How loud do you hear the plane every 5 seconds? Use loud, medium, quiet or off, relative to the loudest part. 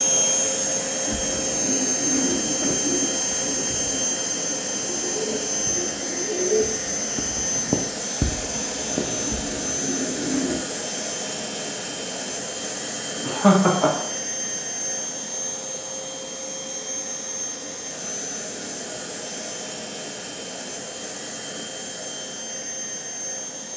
loud, loud, medium, medium, medium.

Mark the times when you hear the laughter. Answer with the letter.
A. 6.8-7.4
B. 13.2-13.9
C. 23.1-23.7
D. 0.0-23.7
B.